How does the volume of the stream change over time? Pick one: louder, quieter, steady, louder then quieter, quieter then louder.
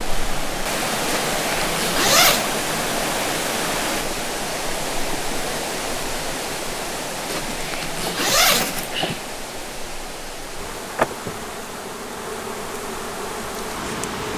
quieter.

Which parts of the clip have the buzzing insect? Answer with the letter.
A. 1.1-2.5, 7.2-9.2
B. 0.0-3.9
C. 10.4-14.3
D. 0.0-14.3
C.